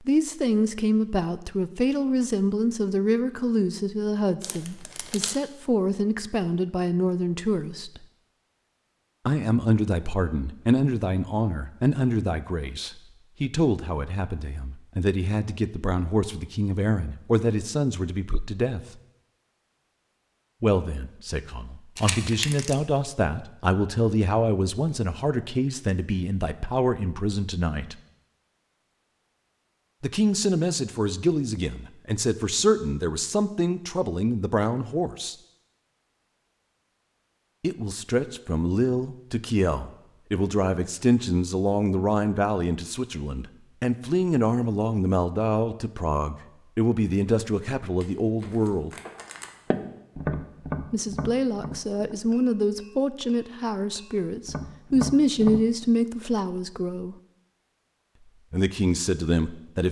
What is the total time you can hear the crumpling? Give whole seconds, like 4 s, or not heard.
3 s.